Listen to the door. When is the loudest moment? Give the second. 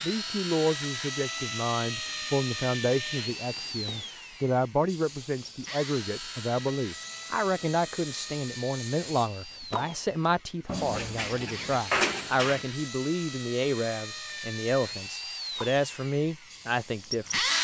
12 s.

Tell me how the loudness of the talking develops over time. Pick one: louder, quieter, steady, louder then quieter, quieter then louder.
steady.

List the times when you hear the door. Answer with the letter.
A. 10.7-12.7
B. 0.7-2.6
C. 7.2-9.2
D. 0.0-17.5
A.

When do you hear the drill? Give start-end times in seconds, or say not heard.
0.0-17.5.